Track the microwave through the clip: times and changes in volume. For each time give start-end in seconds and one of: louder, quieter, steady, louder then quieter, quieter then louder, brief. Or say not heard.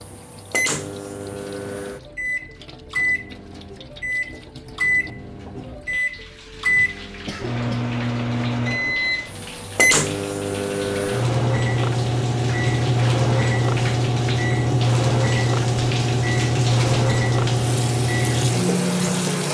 0.0-19.4 louder.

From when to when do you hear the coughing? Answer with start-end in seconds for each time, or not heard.
7.2-7.8.